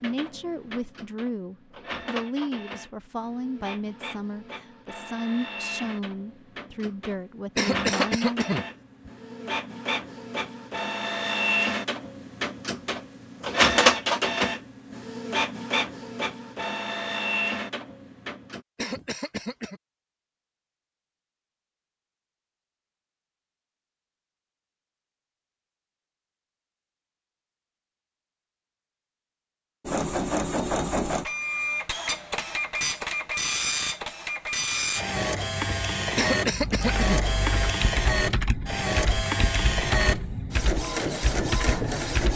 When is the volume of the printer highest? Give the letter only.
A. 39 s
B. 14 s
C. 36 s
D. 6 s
B.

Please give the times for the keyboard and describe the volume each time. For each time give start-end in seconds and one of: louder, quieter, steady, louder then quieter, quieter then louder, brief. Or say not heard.
36.5-42.3 steady.